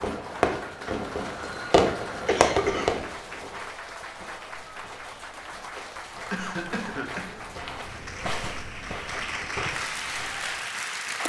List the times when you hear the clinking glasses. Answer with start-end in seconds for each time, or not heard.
not heard.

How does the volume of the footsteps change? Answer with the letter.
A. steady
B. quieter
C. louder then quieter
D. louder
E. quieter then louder
D.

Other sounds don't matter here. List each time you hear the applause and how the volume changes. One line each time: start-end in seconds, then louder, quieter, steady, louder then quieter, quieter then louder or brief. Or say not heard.
0.0-11.2 louder.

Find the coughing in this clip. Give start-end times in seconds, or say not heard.
2.2-3.0, 6.3-7.4.